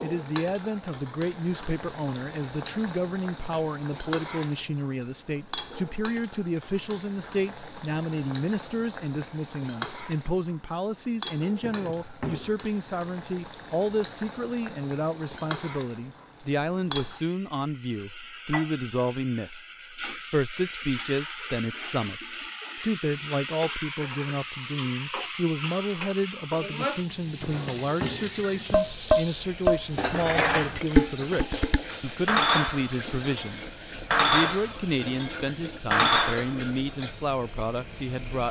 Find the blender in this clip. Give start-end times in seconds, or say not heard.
not heard.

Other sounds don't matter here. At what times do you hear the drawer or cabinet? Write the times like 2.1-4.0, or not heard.
11.6-12.7, 27.4-28.6.